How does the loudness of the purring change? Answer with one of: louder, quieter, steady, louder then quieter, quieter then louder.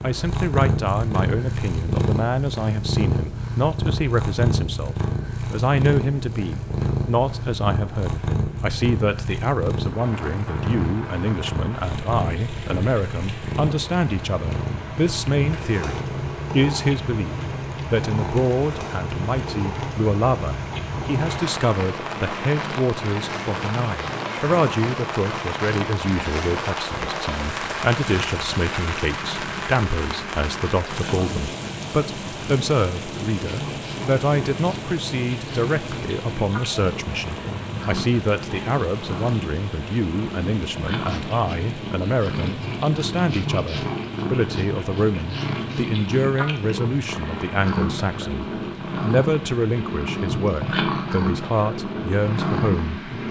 quieter then louder.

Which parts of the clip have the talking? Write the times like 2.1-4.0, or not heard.
0.0-53.0.